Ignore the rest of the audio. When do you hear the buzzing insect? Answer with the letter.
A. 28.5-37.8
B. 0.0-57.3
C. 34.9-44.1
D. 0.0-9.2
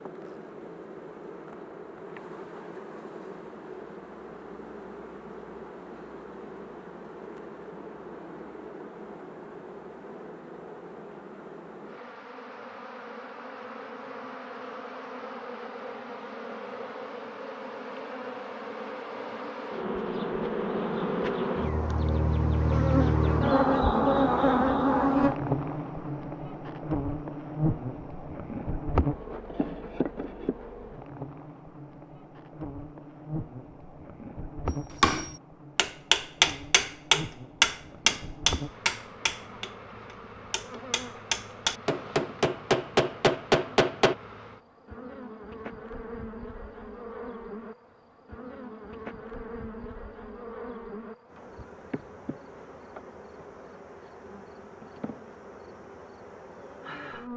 B.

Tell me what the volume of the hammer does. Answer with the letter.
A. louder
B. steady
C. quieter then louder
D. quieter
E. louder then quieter
C.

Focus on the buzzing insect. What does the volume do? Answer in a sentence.
The loudness of the buzzing insect goes up, then down.